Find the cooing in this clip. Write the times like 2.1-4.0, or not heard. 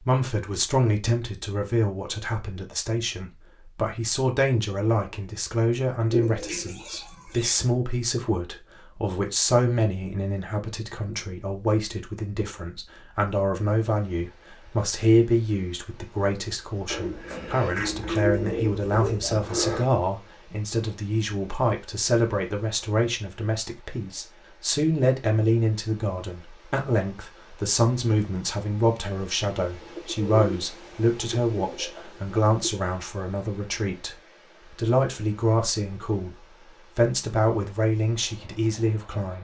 6.1-7.6, 16.9-19.9, 29.8-32.8.